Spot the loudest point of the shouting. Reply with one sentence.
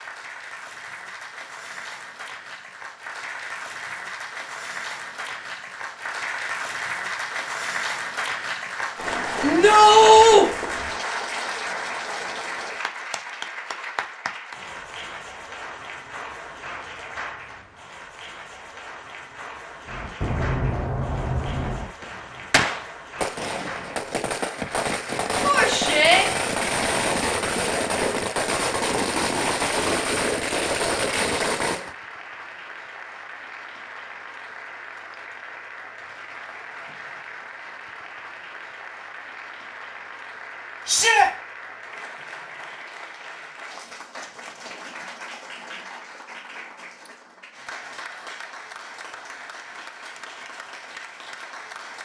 The loudest moment of the shouting is at 10 seconds.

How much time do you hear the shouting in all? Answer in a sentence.
The shouting can be heard for 2 seconds in total.